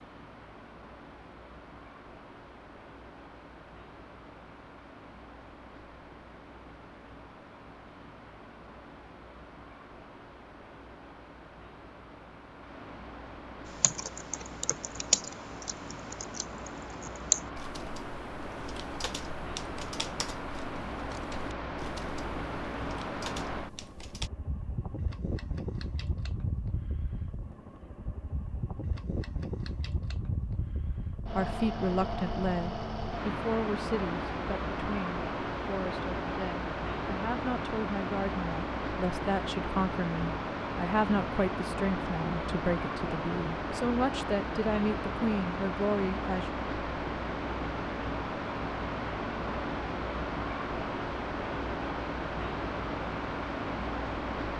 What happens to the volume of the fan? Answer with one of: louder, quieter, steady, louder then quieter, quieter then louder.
louder.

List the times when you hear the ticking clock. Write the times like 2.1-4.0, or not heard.
not heard.